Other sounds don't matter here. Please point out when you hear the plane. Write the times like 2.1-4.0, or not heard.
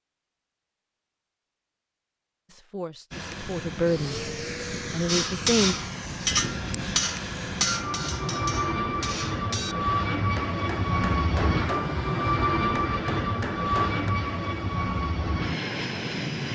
3.1-16.5.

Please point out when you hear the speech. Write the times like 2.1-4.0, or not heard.
2.5-4.3, 4.9-5.8.